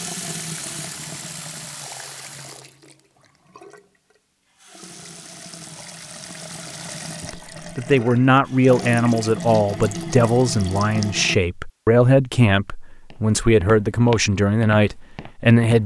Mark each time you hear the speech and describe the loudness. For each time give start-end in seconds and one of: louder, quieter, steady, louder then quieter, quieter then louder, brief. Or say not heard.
7.2-15.8 steady.